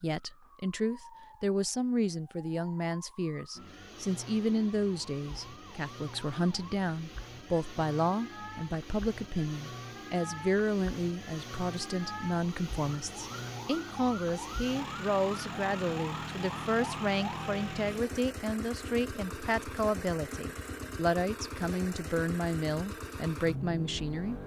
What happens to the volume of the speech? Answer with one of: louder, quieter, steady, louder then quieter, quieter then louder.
steady.